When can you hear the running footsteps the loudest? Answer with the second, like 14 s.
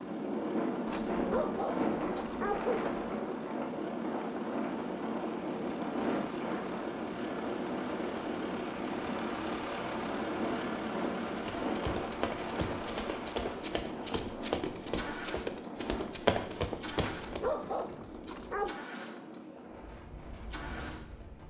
16 s.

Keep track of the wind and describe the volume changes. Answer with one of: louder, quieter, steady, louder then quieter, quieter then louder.
quieter.